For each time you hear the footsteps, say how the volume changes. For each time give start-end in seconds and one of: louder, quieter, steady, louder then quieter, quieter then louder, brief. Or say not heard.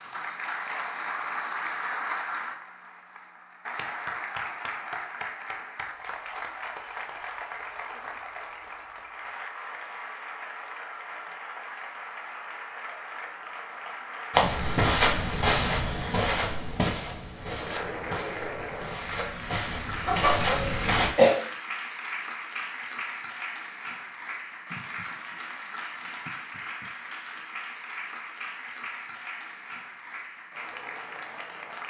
14.3-21.1 quieter then louder.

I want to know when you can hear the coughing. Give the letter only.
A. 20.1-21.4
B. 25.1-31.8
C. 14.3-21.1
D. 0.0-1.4
A.